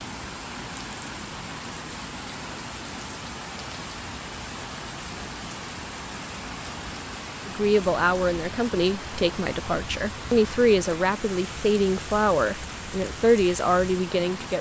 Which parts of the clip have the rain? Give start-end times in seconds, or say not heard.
0.0-14.5.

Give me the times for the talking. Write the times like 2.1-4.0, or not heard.
7.5-14.5.